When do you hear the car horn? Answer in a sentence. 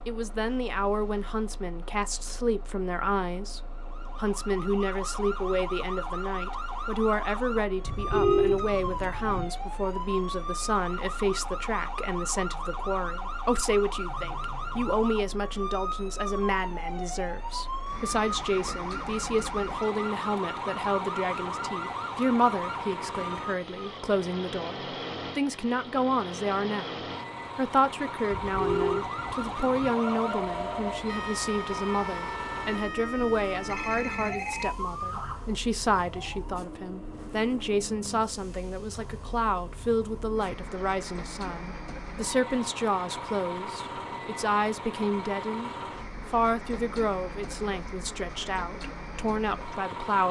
You can hear the car horn from 7.8 to 9.5 s and from 28.3 to 29.9 s.